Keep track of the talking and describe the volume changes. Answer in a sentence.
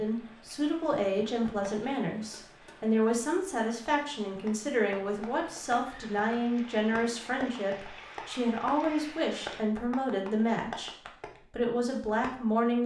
The loudness of the talking stays about the same.